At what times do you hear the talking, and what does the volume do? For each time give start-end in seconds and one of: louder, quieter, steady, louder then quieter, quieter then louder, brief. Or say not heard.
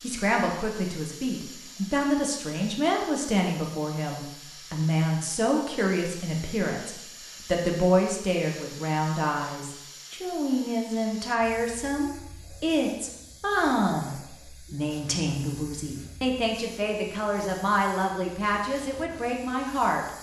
0.0-20.1 steady.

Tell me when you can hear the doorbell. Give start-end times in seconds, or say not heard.
not heard.